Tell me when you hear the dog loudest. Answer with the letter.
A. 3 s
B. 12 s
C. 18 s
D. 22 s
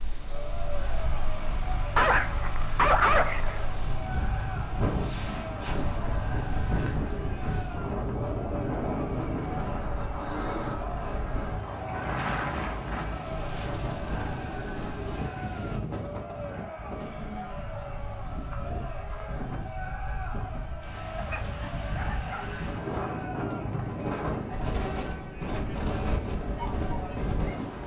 A.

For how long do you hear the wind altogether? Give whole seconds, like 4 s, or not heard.
28 s.